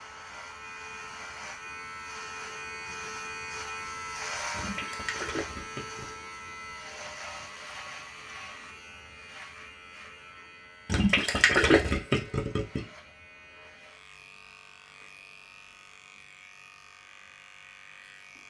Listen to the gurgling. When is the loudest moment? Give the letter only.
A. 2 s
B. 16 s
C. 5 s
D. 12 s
D.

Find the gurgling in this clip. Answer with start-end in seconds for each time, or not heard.
4.5-6.2, 10.8-12.8.